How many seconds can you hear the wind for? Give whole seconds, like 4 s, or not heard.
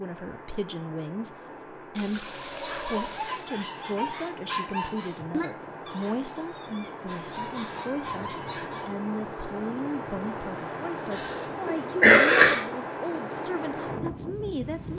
15 s.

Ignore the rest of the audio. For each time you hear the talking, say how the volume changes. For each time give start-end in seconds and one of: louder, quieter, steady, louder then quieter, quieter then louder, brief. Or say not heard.
0.0-14.9 steady.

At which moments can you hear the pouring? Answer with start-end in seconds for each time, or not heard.
1.9-3.5.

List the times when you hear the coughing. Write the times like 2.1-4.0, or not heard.
11.2-12.6.